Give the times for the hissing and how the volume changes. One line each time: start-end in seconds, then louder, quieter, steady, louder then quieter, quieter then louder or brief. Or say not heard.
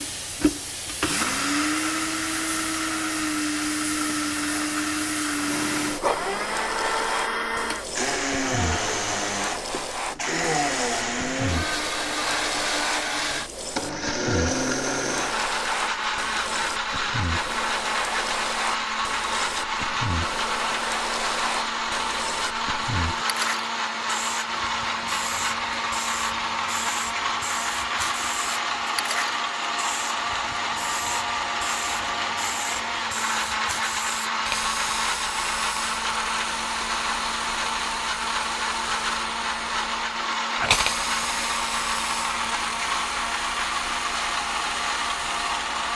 0.0-45.9 steady.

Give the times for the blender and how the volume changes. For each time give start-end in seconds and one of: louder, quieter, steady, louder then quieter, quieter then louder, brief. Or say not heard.
0.0-45.9 steady.